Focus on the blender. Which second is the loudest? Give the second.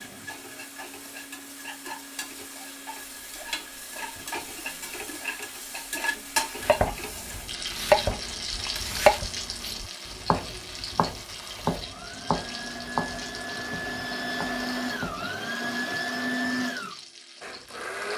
16 s.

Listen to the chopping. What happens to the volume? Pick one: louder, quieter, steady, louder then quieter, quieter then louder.
quieter.